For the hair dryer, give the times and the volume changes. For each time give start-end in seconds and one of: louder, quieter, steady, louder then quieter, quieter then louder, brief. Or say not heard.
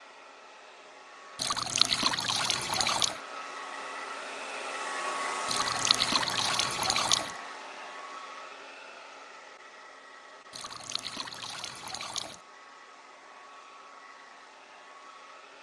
0.0-15.5 louder then quieter.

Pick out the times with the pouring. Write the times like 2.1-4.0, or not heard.
1.4-3.2, 5.5-7.3, 10.5-12.4.